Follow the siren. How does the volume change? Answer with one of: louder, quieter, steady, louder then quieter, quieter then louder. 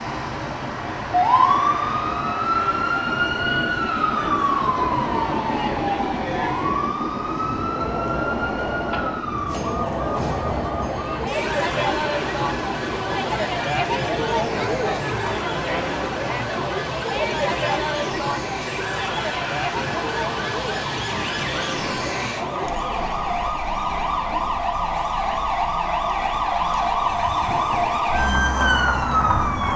quieter then louder.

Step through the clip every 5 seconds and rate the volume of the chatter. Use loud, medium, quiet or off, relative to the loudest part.
medium, medium, loud, loud, medium, quiet.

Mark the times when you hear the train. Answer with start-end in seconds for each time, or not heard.
0.0-13.2, 27.0-29.7.